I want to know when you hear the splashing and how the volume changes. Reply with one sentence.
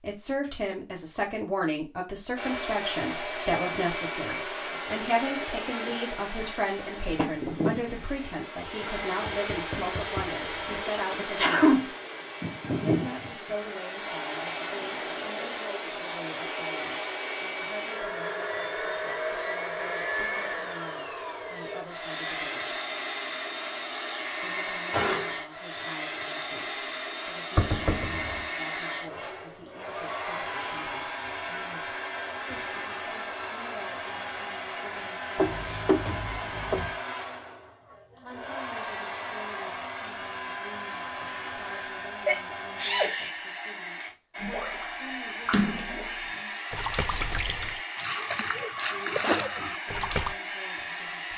You can hear the splashing from 44.4 to 50.4 s, getting quieter then louder.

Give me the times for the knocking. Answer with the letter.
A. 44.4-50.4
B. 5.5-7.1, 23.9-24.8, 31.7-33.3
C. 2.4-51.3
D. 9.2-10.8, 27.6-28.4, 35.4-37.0
D.